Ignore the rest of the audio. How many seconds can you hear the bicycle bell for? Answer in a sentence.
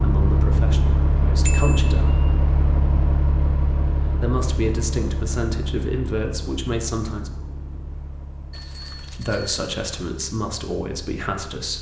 You can hear the bicycle bell for 2 seconds altogether.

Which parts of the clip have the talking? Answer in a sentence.
The talking can be heard from 0.0 to 2.1 s, from 4.1 to 7.3 s and from 9.1 to 11.7 s.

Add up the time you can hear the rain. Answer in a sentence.
You can't hear the rain here.